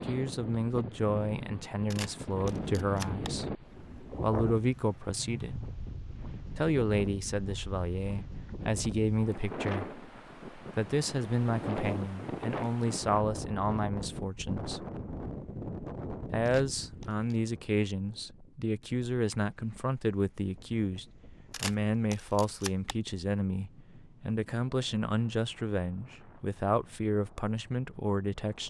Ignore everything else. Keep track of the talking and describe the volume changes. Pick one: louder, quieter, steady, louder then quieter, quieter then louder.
steady.